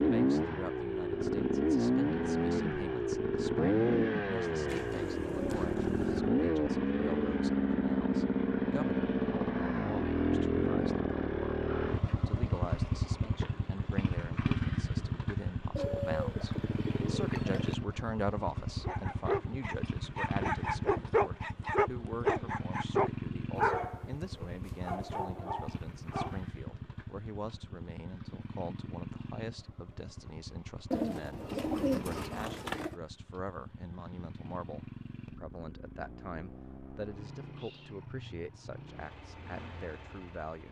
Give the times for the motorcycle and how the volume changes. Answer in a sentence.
You can hear the motorcycle from 0.0 to 40.6 s, getting quieter.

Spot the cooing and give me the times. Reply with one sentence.
The cooing can be heard from 4.7 to 6.2 s, from 15.8 to 17.8 s and from 30.9 to 33.0 s.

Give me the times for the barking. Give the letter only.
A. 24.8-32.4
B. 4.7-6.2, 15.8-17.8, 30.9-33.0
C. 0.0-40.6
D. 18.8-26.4
D.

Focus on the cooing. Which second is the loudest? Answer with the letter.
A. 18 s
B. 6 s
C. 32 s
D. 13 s
C.